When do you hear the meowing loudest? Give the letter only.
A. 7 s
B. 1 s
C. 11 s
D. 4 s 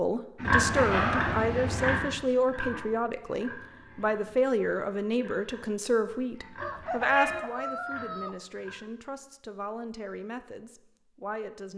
B.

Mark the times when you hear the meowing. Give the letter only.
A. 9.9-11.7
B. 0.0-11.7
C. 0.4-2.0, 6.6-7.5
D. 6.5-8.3
C.